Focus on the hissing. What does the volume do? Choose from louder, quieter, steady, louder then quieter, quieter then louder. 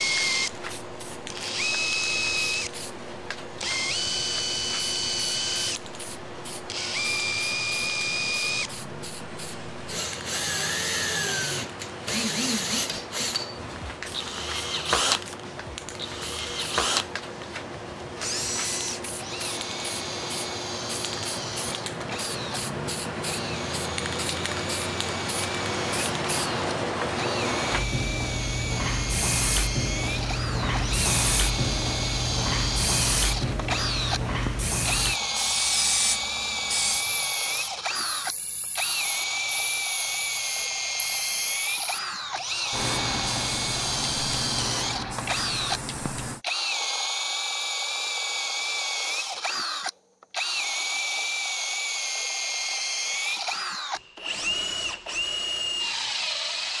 louder then quieter.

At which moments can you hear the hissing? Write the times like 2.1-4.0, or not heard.
0.0-46.4.